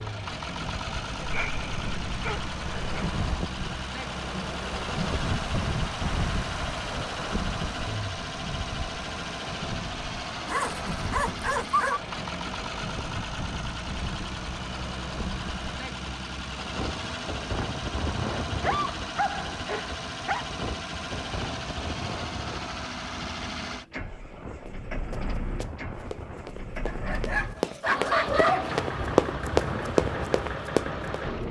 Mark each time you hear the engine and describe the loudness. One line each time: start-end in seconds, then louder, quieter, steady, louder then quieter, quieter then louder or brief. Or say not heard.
0.0-31.4 steady.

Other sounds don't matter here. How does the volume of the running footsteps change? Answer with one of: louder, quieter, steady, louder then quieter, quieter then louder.
louder.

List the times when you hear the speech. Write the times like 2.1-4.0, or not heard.
not heard.